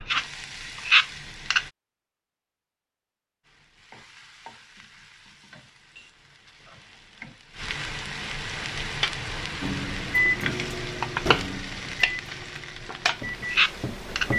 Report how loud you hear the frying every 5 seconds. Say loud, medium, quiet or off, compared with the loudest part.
loud, medium, loud.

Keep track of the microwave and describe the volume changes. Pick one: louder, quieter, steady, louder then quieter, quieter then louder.
quieter then louder.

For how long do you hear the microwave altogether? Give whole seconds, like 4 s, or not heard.
5 s.